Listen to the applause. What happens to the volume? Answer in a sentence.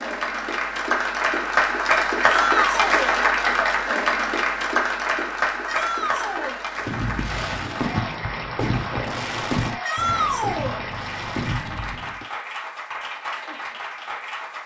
The volume of the applause goes down.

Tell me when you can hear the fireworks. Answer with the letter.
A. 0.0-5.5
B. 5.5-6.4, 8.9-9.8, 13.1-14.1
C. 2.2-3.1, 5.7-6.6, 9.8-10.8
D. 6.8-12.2
D.